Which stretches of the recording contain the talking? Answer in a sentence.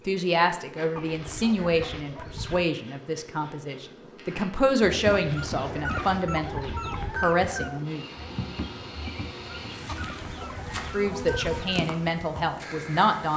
You can hear the talking from 0.1 to 8.1 s and from 10.9 to 13.3 s.